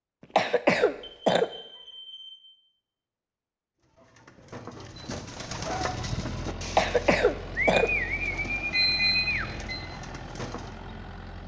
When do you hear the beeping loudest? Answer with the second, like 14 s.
9 s.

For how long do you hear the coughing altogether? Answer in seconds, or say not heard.
2 s.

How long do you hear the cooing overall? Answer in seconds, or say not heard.
7 s.